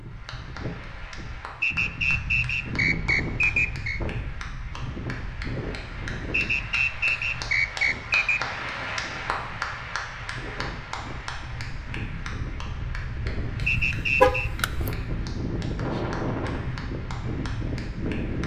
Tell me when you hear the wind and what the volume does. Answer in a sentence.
You can hear the wind from 0.0 to 18.4 s, getting quieter then louder.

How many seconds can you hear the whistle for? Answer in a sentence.
The whistle can be heard for 5 seconds in total.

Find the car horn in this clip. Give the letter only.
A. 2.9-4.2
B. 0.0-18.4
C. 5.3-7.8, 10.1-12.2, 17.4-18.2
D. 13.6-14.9
D.